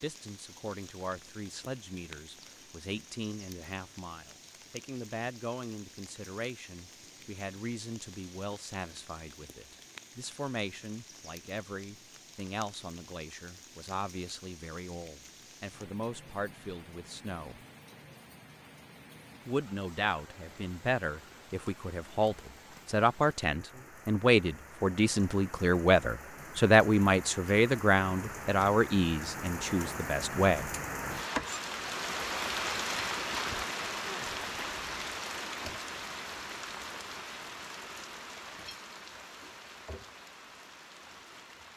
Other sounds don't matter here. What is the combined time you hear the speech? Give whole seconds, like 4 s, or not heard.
29 s.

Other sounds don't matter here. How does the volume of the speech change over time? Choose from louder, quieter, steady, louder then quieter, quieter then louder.
louder.